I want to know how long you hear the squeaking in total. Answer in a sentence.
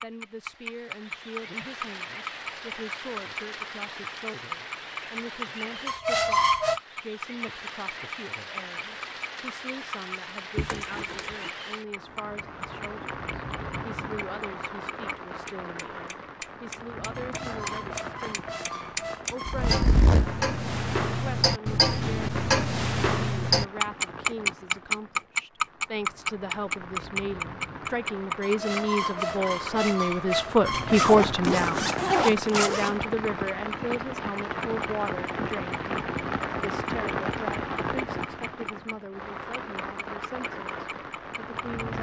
You can hear the squeaking for 6 seconds altogether.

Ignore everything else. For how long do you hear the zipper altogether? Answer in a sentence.
You can hear the zipper for 4 seconds altogether.